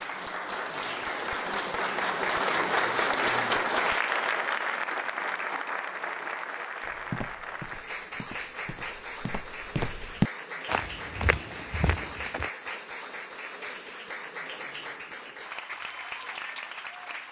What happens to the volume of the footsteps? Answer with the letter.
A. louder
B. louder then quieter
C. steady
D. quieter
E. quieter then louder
B.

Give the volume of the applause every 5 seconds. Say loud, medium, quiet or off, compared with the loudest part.
loud, medium, medium, medium.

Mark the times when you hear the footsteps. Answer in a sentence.
You can hear the footsteps from 6.8 to 12.5 s.